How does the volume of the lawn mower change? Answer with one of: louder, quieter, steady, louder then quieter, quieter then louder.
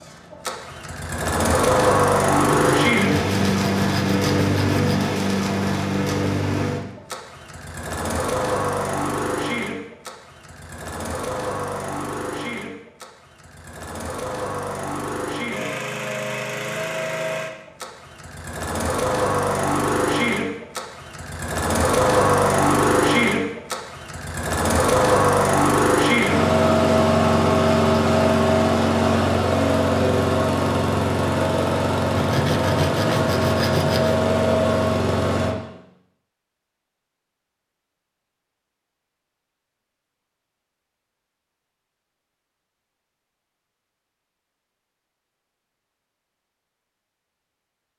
quieter then louder.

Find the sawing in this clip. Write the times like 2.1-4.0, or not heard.
2.5-5.1, 32.1-34.2.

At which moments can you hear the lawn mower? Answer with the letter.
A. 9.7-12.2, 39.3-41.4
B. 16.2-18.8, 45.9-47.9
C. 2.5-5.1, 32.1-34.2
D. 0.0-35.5
D.